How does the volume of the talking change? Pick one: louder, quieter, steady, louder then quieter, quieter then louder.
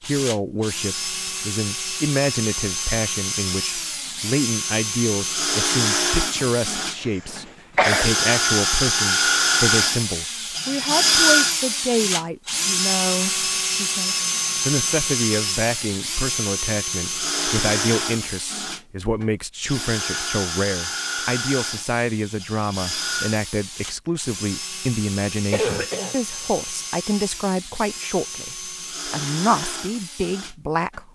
steady.